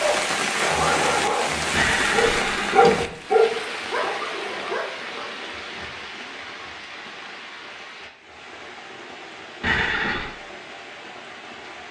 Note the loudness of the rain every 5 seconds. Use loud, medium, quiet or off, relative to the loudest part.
loud, medium, quiet.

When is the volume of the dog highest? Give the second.
3 s.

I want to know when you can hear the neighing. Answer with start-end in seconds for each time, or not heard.
1.7-3.1, 9.6-10.3.